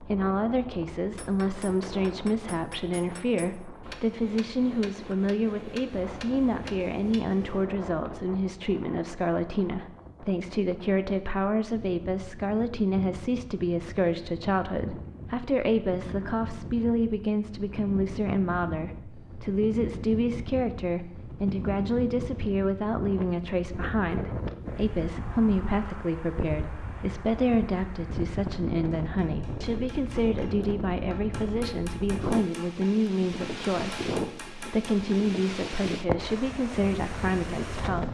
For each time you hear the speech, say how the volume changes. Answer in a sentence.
The speech can be heard from 0.0 to 38.0 s, at a steady volume.